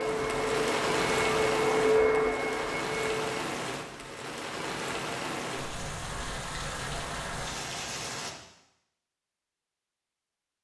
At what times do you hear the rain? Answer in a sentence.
The rain can be heard from 0.0 to 8.3 s.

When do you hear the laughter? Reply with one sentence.
The laughter can't be heard in this clip.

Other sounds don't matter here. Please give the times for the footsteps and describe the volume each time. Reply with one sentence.
The footsteps can't be heard in this clip.